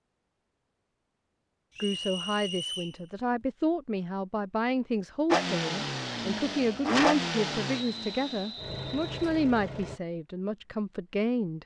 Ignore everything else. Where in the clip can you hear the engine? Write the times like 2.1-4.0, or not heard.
5.3-10.0.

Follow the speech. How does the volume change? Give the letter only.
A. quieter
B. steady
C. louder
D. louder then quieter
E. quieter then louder
B.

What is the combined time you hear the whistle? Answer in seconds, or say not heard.
3 s.